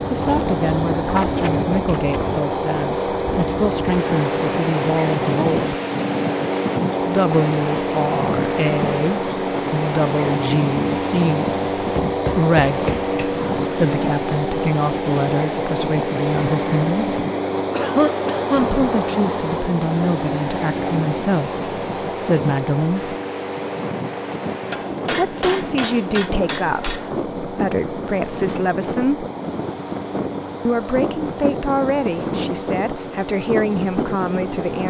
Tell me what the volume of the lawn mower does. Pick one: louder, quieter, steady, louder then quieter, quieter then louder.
quieter.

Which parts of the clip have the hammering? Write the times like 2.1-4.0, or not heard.
11.8-13.3, 24.7-27.1.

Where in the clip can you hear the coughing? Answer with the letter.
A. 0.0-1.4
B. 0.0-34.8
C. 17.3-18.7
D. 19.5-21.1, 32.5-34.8
C.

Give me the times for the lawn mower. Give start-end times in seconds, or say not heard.
0.0-34.8.